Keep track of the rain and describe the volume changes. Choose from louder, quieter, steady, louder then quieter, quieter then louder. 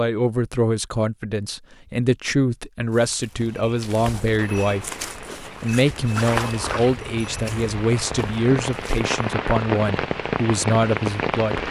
louder.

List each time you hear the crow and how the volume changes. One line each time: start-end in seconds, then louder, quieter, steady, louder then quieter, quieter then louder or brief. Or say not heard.
not heard.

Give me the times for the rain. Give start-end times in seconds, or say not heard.
4.3-11.6.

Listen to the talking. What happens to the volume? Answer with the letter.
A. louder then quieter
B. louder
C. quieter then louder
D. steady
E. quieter
D.